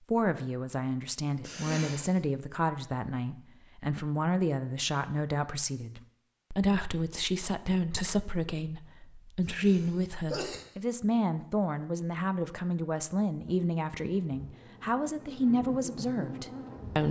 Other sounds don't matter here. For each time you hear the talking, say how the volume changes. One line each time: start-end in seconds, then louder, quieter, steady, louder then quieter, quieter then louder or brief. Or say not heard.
0.1-17.0 steady.